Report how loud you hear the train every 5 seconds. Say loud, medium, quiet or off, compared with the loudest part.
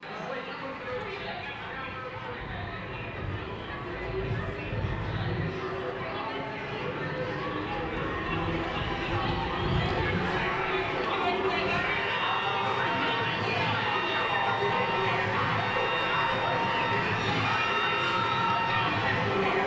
medium, loud, loud, loud.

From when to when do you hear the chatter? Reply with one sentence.
You can hear the chatter from 0.0 to 19.6 s.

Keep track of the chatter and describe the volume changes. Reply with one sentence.
The loudness of the chatter goes up.